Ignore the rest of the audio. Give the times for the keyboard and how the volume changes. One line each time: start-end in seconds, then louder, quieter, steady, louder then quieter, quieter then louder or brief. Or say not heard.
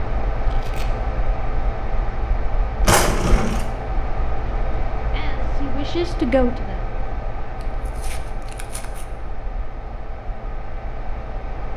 not heard.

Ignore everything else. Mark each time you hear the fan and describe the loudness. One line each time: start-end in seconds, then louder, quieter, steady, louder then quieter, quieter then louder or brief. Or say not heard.
0.0-11.7 quieter.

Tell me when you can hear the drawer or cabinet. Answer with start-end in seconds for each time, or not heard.
2.9-3.6.